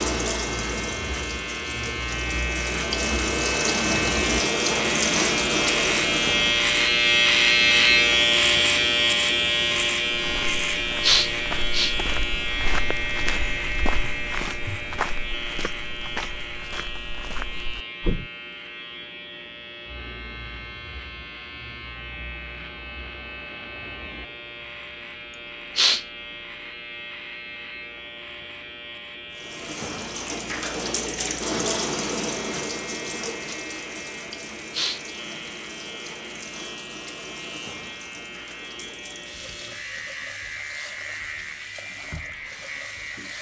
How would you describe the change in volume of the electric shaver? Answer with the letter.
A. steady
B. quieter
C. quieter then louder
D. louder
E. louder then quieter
B.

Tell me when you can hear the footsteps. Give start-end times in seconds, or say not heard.
10.2-18.3.